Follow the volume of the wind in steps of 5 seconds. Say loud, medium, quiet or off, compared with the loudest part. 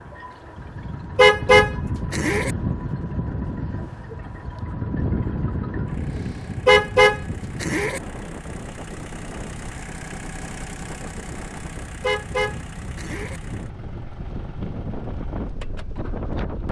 loud, loud, medium, loud.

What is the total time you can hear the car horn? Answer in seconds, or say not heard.
4 s.